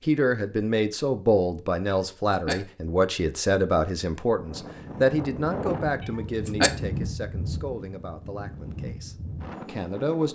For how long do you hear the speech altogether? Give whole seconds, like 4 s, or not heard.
10 s.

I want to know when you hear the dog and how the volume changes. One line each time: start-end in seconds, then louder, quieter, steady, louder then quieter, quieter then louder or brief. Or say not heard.
not heard.